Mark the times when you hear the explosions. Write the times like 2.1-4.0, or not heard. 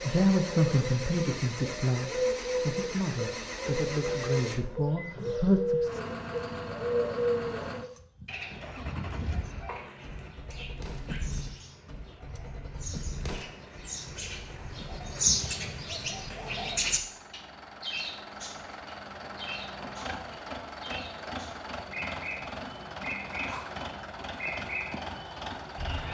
10.8-11.2, 13.2-13.7.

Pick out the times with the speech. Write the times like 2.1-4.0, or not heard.
0.0-5.9.